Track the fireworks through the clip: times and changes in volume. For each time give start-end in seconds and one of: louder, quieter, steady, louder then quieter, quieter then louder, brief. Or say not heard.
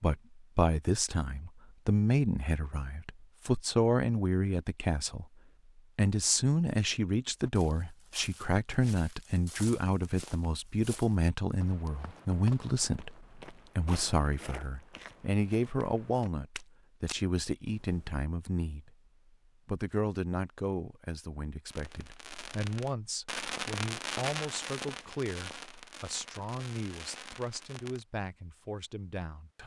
21.7-28.1 louder then quieter.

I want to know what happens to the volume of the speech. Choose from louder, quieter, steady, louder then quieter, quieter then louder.
quieter.